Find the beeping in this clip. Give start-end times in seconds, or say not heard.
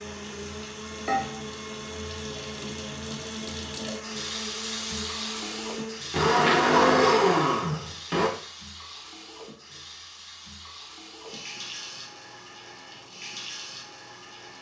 not heard.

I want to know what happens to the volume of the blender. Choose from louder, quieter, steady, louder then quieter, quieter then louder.
louder.